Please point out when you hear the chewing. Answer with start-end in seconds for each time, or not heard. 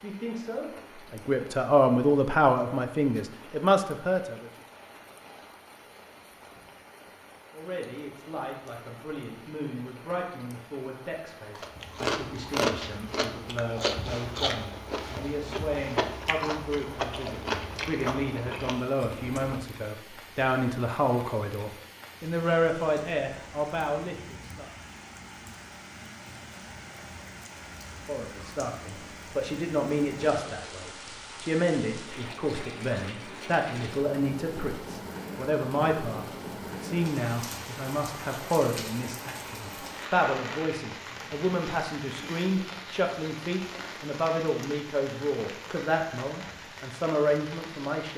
11.6-19.8.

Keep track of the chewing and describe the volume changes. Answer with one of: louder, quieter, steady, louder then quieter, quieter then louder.
quieter.